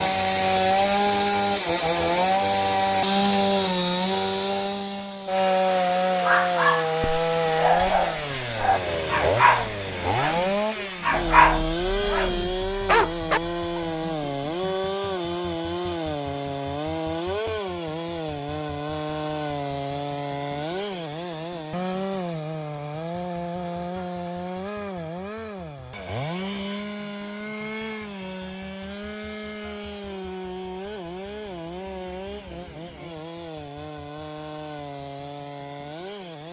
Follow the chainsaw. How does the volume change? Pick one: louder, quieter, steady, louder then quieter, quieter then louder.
quieter.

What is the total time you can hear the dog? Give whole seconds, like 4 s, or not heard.
8 s.